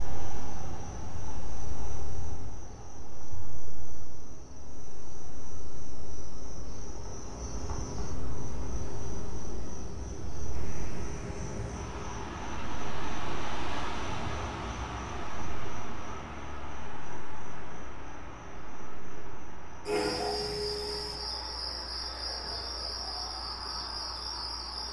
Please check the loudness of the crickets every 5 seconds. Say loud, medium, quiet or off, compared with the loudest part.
medium, medium, medium, medium, loud.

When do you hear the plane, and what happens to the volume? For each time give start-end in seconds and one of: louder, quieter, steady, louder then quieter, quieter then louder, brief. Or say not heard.
not heard.